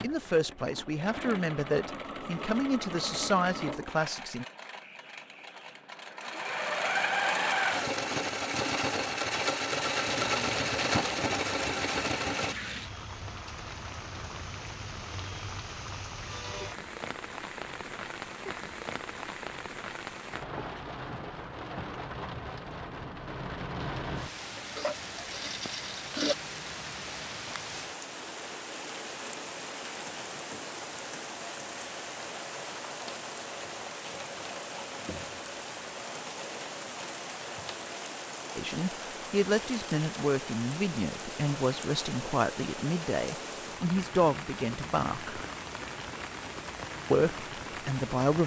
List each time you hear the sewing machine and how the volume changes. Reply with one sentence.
The sewing machine can be heard from 0.0 to 12.6 s, getting louder; and briefly from 24.4 to 26.4 s.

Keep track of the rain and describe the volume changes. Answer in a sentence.
The loudness of the rain stays about the same.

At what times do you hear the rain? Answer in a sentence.
The rain can be heard from 9.9 to 48.4 s.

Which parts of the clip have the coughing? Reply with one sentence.
You can't hear the coughing here.